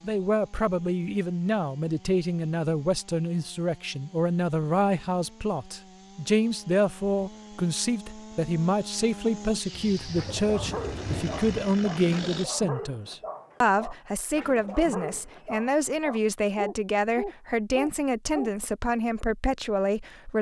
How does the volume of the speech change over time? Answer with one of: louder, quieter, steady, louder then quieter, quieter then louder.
steady.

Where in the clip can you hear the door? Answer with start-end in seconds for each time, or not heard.
not heard.